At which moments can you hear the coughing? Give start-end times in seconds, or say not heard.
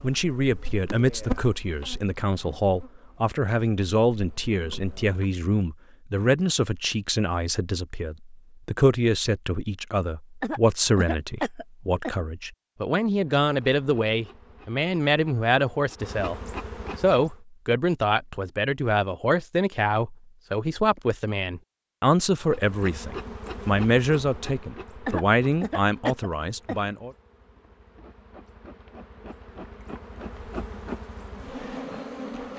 10.4-12.2, 25.1-26.9.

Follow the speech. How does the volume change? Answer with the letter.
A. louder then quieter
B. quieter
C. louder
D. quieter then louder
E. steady
E.